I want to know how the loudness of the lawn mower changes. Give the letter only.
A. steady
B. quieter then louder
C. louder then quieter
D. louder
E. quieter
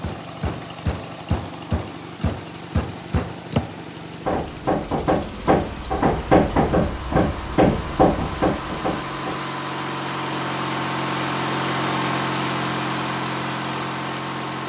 D.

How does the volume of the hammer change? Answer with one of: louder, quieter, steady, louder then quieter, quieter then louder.
louder.